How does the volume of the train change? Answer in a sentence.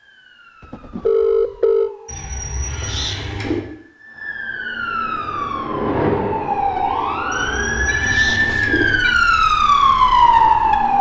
The volume of the train goes up, then down.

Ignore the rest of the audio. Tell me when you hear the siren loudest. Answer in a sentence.
The loudest moment of the siren is at 10 seconds.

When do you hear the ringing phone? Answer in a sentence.
You can hear the ringing phone from 0.6 to 1.9 s and from 7.8 to 9.2 s.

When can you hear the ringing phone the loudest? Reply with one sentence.
The loudest moment of the ringing phone is at 1 second.